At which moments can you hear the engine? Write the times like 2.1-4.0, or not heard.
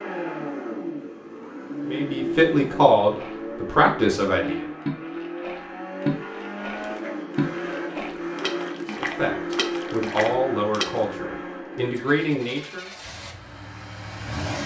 0.0-14.6.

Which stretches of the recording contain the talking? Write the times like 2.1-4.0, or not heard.
1.9-4.7, 8.8-12.8.